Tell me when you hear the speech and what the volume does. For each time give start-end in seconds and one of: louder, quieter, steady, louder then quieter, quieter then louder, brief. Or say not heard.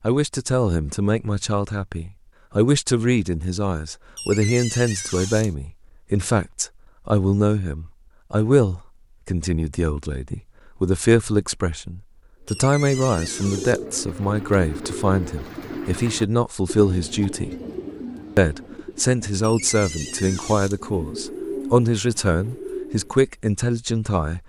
0.0-17.5 steady
18.4-24.4 steady.